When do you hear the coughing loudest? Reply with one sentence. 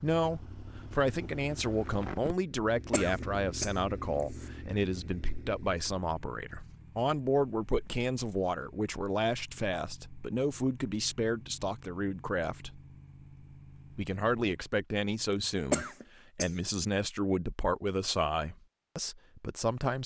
The loudest moment of the coughing is at 16 seconds.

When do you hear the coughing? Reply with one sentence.
The coughing can be heard from 2.9 to 4.5 s and from 15.7 to 16.6 s.